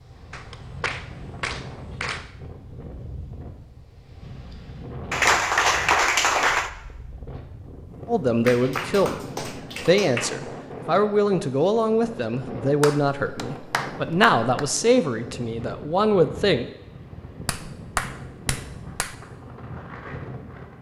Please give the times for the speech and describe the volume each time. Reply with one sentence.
The speech can be heard from 8.1 to 16.6 s, at a steady volume.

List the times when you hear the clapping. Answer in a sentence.
The clapping can be heard from 0.3 to 2.2 s, from 5.1 to 6.7 s, from 8.4 to 10.4 s, from 12.8 to 14.8 s and from 17.4 to 19.1 s.